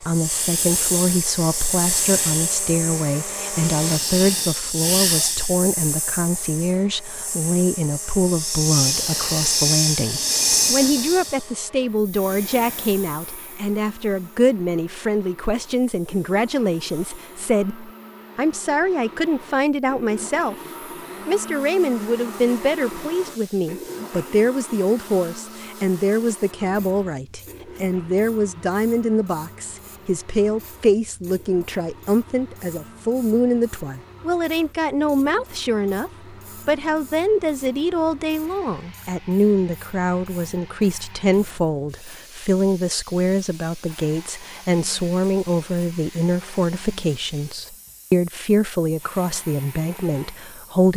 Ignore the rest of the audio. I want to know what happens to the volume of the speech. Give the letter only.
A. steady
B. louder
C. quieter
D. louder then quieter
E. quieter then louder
A.